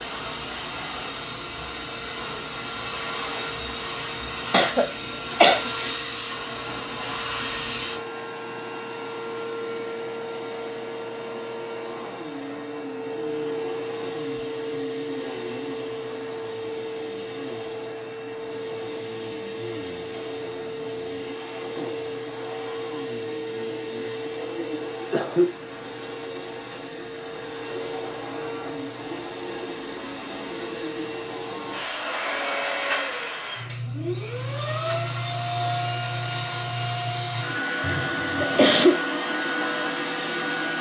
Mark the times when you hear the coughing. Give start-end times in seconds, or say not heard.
4.5-5.7, 25.0-25.5, 37.8-39.0.